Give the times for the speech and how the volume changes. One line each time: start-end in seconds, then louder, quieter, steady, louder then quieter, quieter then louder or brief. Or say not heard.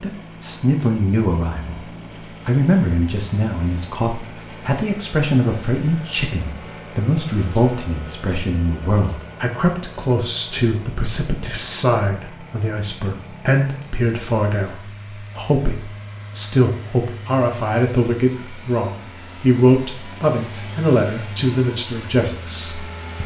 0.0-1.9 brief
2.5-23.2 steady.